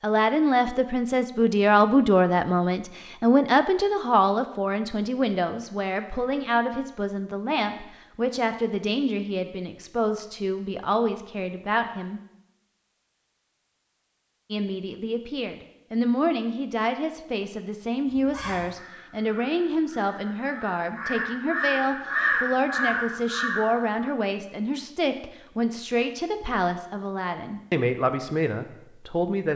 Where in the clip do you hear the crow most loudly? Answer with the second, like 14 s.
22 s.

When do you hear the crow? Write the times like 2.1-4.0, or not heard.
18.1-24.1.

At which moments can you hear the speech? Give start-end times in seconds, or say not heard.
0.0-12.2, 14.5-29.5.